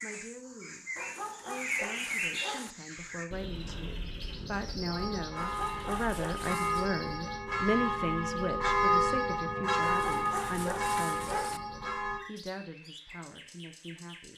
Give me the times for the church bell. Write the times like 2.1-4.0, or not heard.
4.9-12.2.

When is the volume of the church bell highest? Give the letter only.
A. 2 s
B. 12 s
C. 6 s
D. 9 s
D.